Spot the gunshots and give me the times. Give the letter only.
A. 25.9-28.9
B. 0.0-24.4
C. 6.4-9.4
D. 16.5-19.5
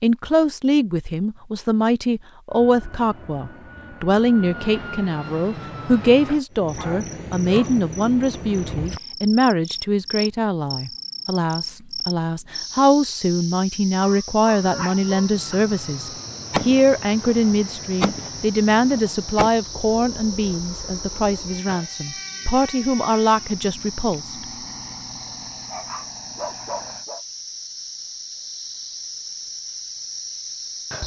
D.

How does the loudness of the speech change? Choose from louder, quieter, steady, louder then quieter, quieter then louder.
steady.